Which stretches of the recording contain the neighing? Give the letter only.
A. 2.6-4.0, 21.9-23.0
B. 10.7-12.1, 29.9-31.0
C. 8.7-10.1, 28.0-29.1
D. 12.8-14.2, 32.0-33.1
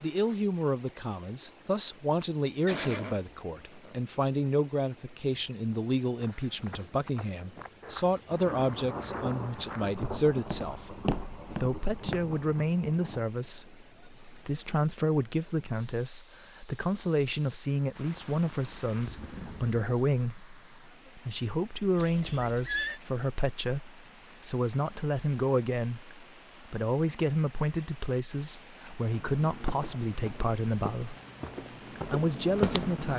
A.